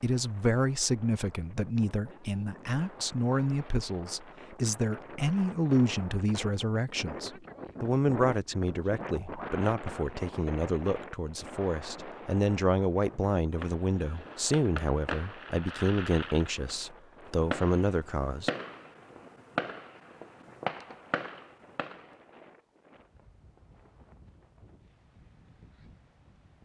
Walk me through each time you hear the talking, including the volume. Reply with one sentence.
The talking can be heard from 0.0 to 18.5 s, at a steady volume.